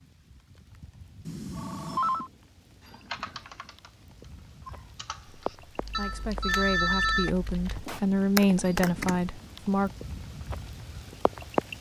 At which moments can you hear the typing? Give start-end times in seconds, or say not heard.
2.9-9.2.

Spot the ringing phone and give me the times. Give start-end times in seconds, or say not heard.
1.2-2.3, 5.9-7.3.